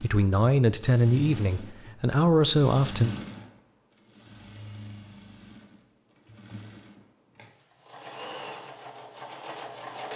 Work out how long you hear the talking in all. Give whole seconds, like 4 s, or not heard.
3 s.